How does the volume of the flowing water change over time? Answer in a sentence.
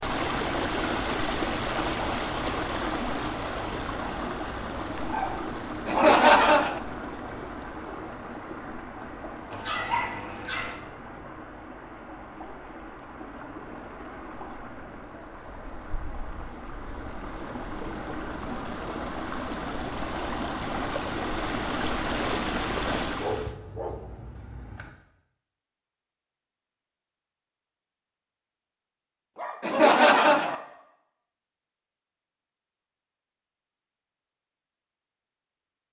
The volume of the flowing water goes down, then up.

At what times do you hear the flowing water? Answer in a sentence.
The flowing water can be heard from 0.0 to 23.6 s.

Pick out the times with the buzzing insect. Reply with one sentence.
You can't hear the buzzing insect here.